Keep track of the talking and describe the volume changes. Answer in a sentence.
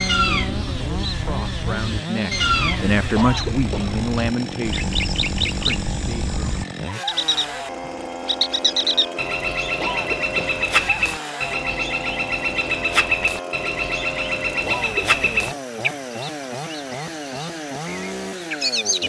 The loudness of the talking goes up, then down.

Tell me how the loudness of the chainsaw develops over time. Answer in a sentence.
The loudness of the chainsaw stays about the same.